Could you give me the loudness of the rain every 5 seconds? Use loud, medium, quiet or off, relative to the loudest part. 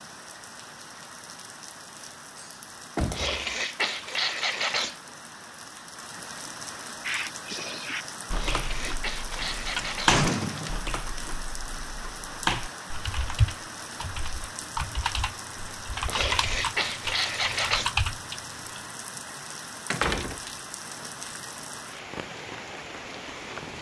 medium, loud, loud, loud, loud.